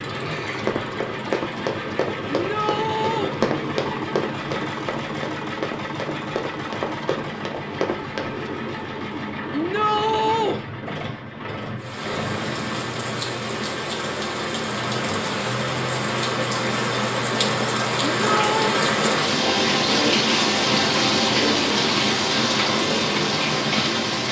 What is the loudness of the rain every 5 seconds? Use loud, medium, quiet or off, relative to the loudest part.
off, off, medium, loud, loud.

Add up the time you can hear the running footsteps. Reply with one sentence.
You can hear the running footsteps for 8 seconds altogether.